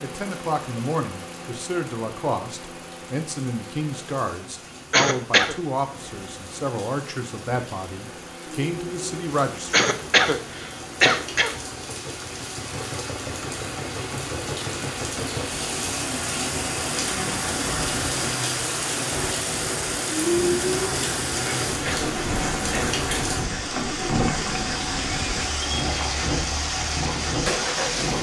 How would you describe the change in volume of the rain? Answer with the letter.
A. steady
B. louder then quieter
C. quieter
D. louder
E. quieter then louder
D.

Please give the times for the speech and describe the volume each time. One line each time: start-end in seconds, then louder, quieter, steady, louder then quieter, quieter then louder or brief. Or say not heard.
0.0-9.8 steady.